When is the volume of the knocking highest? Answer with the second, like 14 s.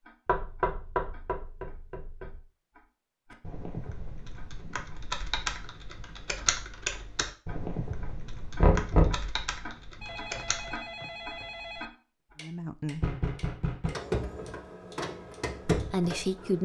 9 s.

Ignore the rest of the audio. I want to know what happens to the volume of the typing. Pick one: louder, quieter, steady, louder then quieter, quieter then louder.
louder then quieter.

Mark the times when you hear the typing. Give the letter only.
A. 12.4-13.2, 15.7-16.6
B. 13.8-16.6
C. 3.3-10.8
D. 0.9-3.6
C.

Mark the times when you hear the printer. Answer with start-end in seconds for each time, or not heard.
13.8-16.6.